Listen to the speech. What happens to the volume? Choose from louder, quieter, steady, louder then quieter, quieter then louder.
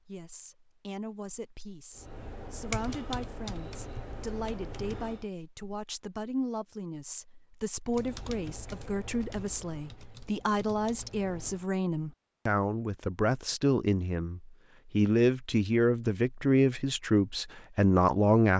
louder.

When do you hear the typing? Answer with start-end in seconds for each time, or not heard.
1.9-5.2, 7.8-11.7.